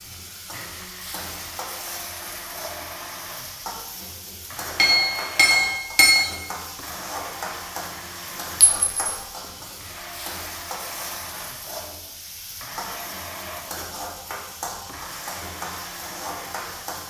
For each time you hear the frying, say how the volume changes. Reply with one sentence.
You can hear the frying from 0.0 to 17.0 s, at a steady volume.